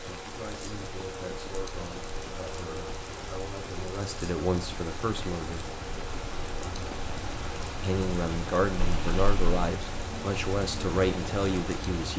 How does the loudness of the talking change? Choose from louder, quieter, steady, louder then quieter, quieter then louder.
louder.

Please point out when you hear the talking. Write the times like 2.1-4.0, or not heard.
0.0-5.7, 7.8-12.1.